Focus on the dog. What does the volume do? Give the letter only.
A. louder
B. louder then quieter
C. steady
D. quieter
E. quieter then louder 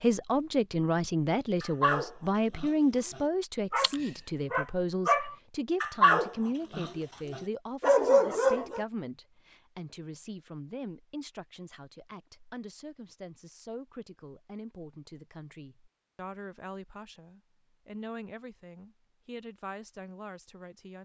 A.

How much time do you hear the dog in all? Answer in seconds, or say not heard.
7 s.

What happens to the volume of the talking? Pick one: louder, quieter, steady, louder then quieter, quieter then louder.
quieter.